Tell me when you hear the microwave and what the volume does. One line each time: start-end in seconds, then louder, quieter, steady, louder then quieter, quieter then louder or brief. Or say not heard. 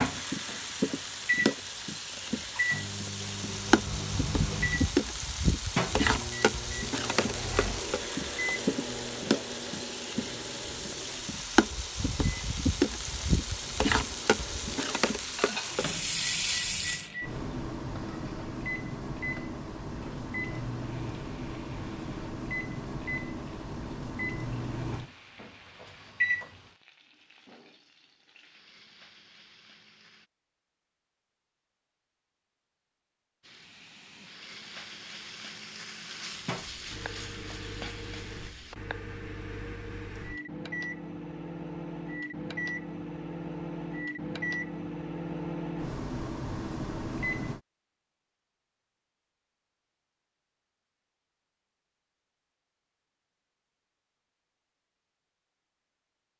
0.0-26.7 quieter then louder
36.4-47.6 louder.